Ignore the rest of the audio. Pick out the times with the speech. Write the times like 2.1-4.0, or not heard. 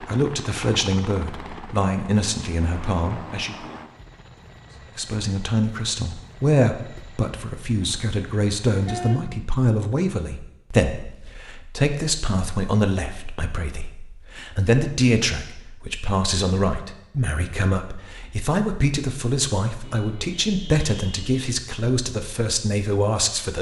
0.0-3.7, 5.0-23.5.